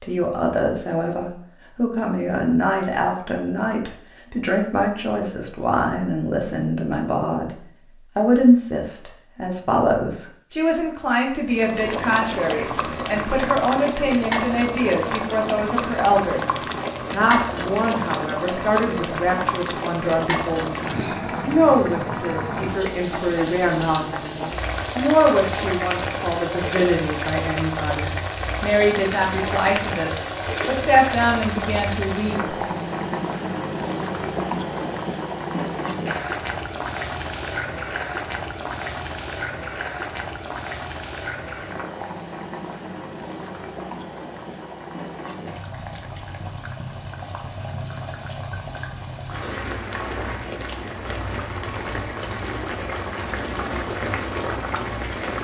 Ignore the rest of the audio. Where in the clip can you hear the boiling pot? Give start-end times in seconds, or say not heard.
11.4-55.3.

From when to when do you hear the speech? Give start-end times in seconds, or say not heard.
0.0-7.5, 8.2-32.5.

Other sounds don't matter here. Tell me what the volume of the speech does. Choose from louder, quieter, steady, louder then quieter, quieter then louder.
steady.